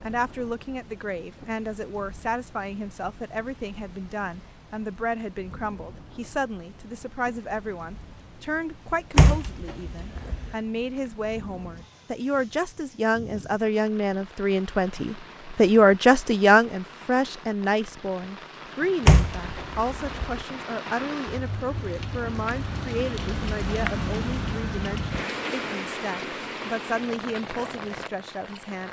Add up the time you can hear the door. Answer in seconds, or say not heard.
3 s.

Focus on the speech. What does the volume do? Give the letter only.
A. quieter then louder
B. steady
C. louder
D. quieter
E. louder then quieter
E.